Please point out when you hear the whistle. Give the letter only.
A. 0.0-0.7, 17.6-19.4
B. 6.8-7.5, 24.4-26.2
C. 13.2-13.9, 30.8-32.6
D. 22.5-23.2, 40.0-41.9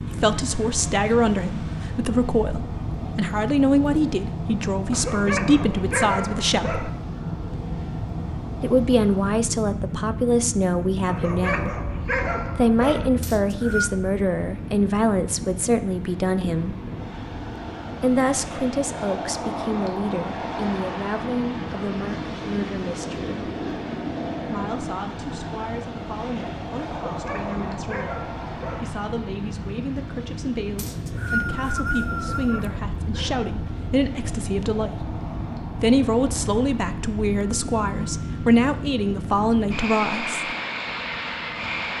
C.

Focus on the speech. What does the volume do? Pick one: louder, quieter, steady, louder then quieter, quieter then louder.
quieter then louder.